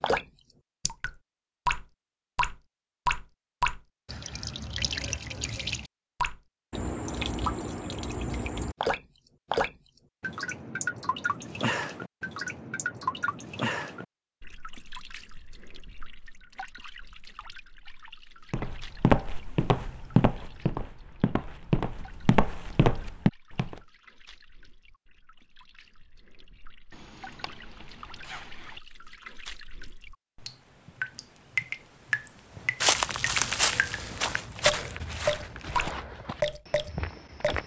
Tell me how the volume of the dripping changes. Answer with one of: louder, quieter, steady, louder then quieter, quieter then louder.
quieter then louder.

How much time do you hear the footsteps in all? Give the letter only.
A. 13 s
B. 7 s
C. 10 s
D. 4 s
C.